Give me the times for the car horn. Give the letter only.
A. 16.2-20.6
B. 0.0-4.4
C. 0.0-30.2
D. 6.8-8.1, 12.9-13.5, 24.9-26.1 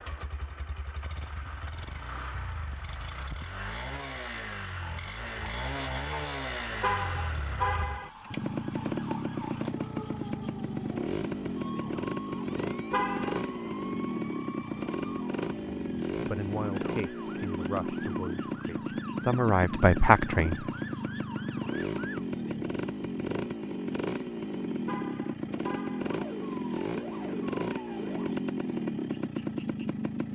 D.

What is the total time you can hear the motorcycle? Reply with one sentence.
You can hear the motorcycle for 30 seconds altogether.